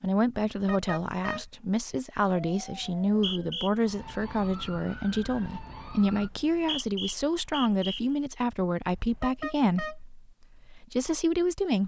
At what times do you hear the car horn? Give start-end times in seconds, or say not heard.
0.6-1.5, 8.8-10.0.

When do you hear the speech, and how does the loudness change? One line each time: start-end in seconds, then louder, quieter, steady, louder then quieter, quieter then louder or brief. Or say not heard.
0.0-11.8 steady.